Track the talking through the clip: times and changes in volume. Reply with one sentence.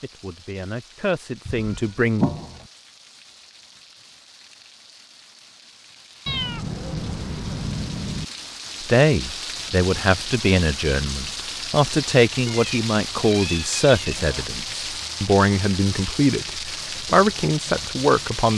You can hear the talking briefly from 0.0 to 2.2 s; and from 8.8 to 18.5 s, at a steady volume.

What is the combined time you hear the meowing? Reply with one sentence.
The meowing can be heard for 5 seconds in total.